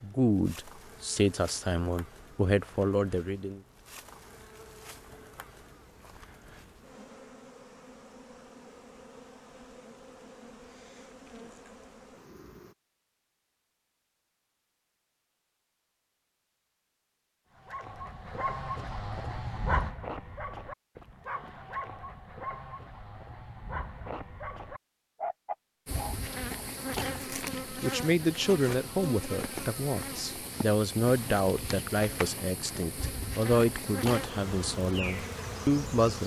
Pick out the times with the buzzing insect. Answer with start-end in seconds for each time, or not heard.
0.0-12.8, 25.9-36.2.